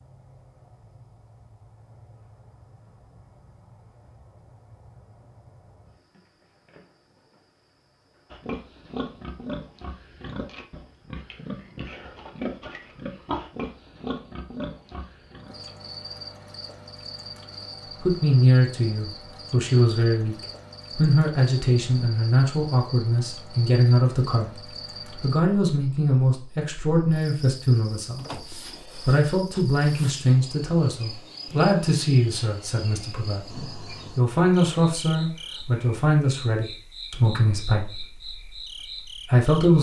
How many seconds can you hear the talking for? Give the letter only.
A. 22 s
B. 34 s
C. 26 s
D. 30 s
A.